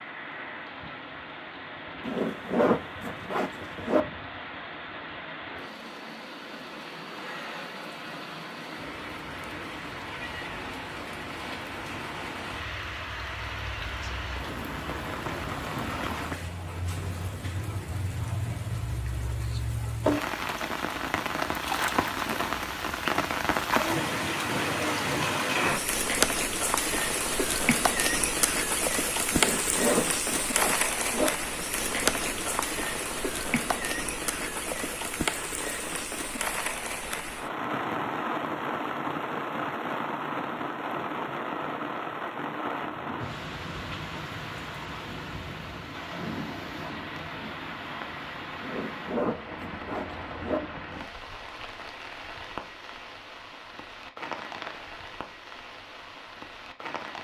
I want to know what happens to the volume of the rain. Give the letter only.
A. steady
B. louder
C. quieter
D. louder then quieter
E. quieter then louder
D.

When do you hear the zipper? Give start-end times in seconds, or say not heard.
2.0-4.0, 29.3-31.3, 48.6-50.6.